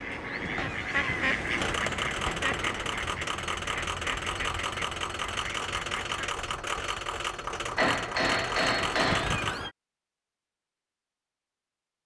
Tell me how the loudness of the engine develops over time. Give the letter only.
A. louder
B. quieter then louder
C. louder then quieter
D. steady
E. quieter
D.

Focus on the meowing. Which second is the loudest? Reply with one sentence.
The loudest moment of the meowing is at 9 seconds.